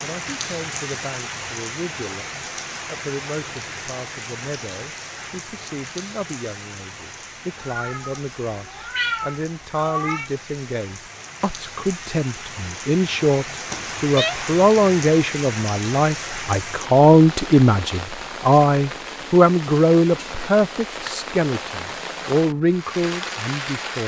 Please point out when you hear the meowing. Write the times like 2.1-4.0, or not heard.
7.6-10.3, 13.7-14.3.